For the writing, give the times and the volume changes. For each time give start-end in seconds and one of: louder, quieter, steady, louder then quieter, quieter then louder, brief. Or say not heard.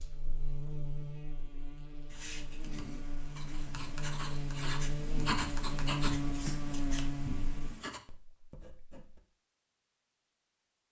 2.0-9.2 louder then quieter.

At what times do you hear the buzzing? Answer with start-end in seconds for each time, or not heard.
0.0-7.7.